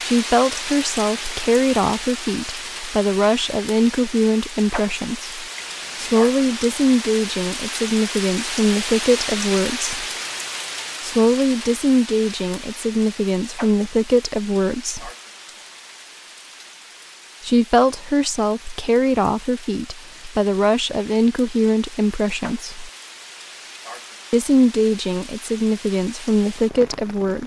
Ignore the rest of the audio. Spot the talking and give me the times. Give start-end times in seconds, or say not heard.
0.0-10.1, 11.0-15.1, 17.4-22.9, 24.3-27.4.